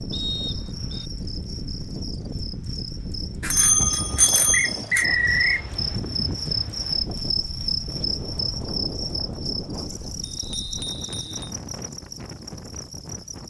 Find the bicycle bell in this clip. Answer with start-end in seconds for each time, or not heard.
3.4-5.0, 10.3-11.6.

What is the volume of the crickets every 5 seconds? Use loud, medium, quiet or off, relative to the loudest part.
medium, loud, medium.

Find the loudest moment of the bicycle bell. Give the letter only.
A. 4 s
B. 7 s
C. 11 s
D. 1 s
A.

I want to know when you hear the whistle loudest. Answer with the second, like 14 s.
5 s.